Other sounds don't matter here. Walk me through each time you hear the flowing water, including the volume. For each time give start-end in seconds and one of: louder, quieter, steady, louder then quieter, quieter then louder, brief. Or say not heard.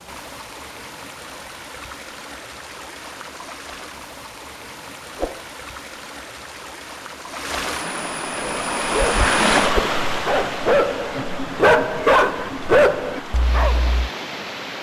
0.0-14.7 louder then quieter.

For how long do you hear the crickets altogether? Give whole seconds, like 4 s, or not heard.
not heard.